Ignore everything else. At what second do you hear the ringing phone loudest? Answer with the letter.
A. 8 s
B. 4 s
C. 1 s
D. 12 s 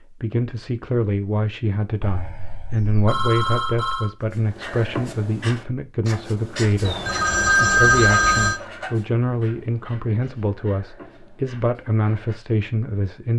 A.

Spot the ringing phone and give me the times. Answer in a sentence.
The ringing phone can be heard from 2.0 to 4.1 s and from 6.8 to 8.6 s.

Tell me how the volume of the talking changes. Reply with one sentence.
The loudness of the talking stays about the same.